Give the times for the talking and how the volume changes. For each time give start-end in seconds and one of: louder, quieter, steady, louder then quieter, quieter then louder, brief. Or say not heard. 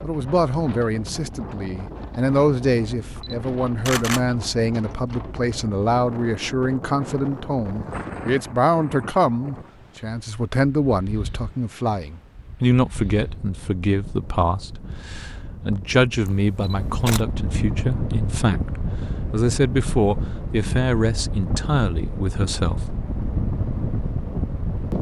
0.0-22.9 steady.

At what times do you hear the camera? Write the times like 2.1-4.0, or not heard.
3.1-4.4, 16.2-17.2.